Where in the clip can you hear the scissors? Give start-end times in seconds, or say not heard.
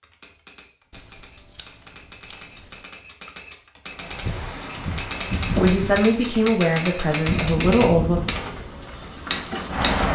0.9-2.9.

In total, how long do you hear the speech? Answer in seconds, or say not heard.
3 s.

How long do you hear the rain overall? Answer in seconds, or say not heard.
6 s.